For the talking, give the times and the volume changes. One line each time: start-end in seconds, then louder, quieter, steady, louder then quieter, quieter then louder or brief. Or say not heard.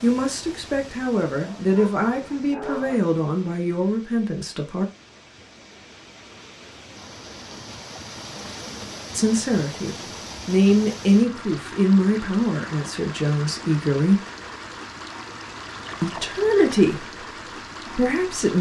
0.0-4.8 steady
9.2-14.2 louder then quieter
16.0-17.1 brief
17.9-18.5 brief.